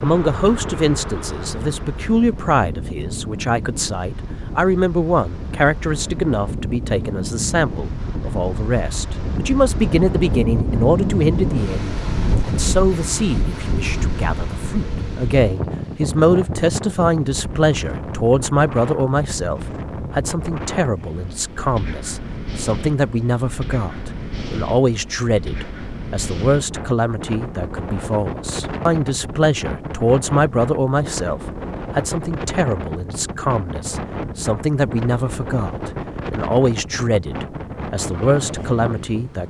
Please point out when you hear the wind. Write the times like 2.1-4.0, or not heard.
0.0-39.4.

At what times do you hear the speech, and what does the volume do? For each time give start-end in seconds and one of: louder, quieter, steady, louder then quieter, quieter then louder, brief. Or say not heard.
0.0-39.4 steady.